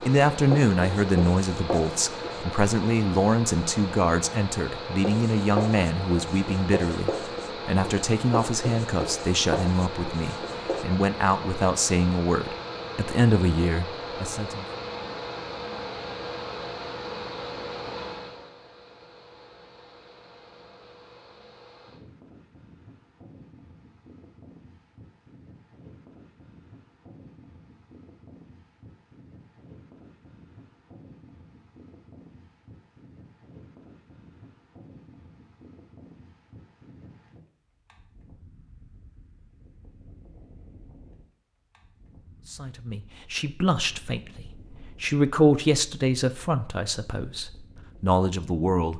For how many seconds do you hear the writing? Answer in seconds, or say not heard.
8 s.